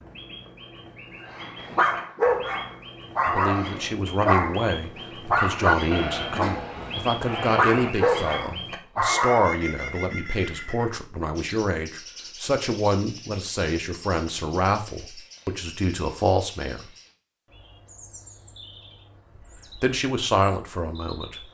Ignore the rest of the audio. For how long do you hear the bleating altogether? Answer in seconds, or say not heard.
2 s.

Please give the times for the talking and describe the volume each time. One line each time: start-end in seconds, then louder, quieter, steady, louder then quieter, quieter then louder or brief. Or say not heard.
3.2-16.9 steady
19.8-21.4 brief.